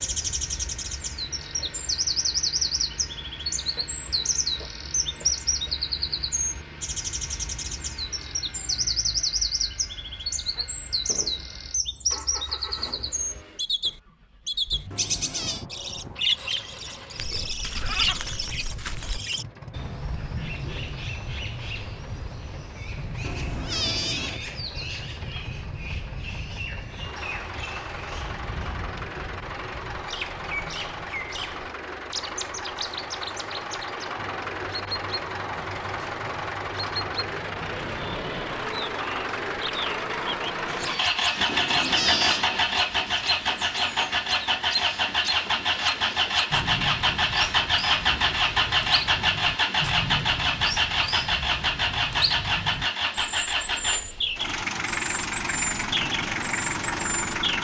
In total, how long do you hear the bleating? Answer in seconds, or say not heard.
2 s.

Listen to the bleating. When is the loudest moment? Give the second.
18 s.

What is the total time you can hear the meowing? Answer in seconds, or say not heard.
3 s.